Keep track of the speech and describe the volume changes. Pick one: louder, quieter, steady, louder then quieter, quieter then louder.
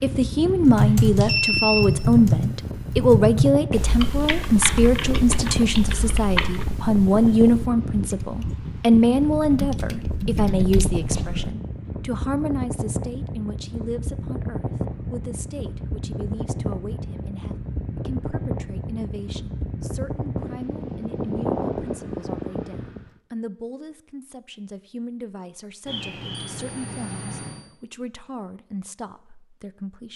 quieter.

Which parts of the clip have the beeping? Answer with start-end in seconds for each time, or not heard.
0.8-1.9, 25.9-27.6.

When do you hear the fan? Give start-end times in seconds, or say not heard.
0.0-23.1.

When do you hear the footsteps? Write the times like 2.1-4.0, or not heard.
not heard.